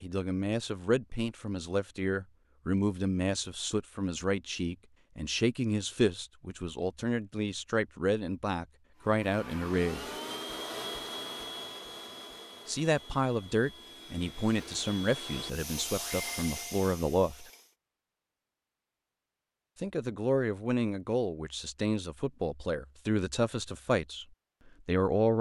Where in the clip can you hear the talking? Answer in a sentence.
The talking can be heard from 0.0 to 10.1 s, from 12.7 to 17.4 s, from 19.8 to 24.2 s and from 24.9 to 25.3 s.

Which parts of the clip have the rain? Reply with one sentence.
You can't hear the rain here.